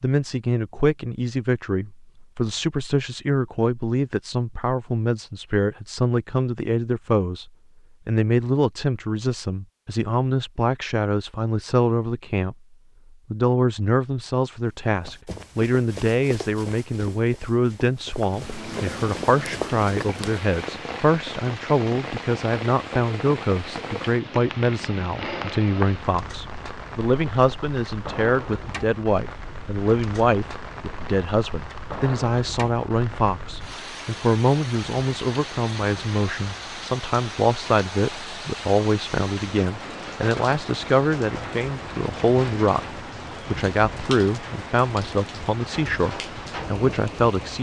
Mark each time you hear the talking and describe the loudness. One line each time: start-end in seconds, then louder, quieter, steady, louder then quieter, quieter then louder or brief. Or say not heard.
0.0-12.6 steady
13.3-47.5 steady.